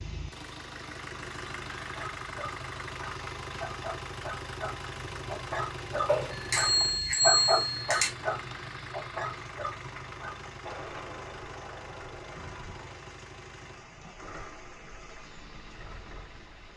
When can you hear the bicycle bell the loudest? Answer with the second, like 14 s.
7 s.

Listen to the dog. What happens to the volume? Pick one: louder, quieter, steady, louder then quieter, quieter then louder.
louder then quieter.